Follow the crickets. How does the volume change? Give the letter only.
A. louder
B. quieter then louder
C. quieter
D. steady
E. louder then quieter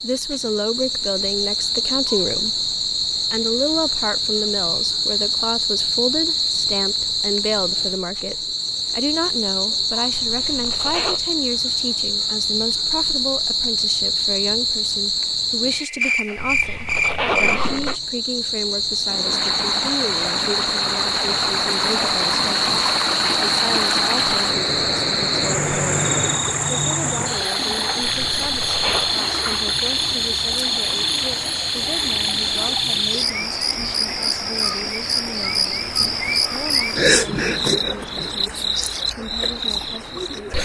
D.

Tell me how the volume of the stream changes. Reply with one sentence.
The loudness of the stream goes down.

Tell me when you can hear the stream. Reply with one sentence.
The stream can be heard from 19.1 to 40.6 s.